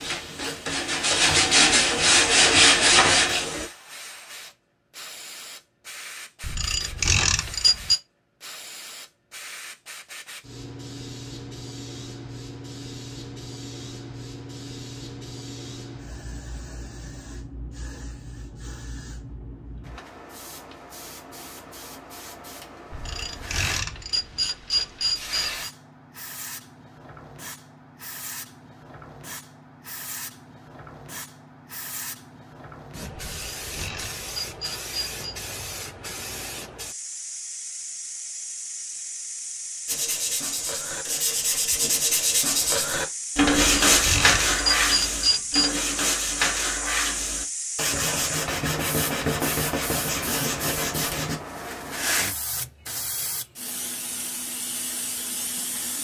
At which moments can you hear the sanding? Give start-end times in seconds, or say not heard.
0.0-3.6, 39.9-51.4.